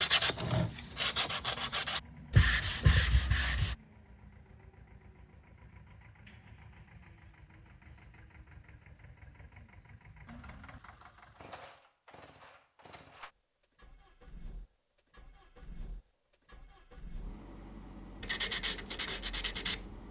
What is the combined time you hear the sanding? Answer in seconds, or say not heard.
5 s.